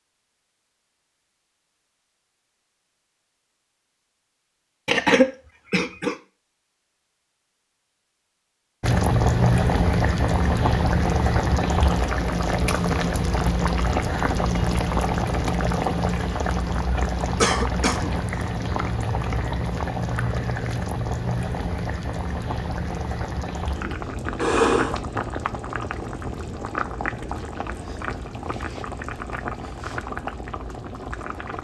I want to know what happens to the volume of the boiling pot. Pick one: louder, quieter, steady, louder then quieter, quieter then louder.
quieter.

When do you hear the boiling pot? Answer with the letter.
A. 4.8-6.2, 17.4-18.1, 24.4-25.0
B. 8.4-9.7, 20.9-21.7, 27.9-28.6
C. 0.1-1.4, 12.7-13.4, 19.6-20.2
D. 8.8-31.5
D.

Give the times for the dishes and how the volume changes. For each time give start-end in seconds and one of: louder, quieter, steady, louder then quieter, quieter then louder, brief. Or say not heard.
not heard.